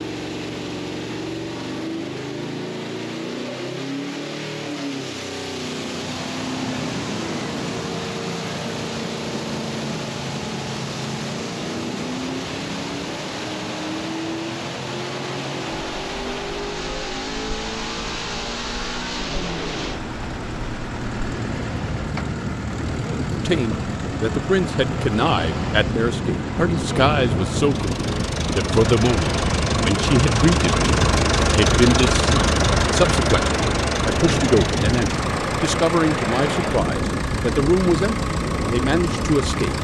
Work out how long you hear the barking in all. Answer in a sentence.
You can't hear the barking here.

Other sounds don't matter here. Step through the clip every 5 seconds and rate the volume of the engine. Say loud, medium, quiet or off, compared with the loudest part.
medium, medium, medium, medium, medium, medium, loud, medium.